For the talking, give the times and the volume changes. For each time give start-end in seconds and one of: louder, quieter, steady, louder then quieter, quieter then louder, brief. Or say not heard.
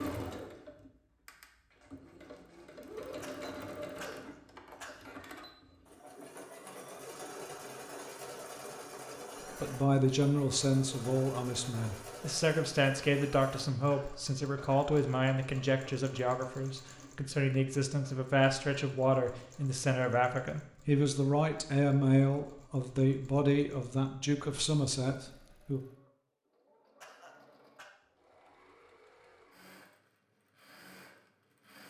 9.6-25.8 steady.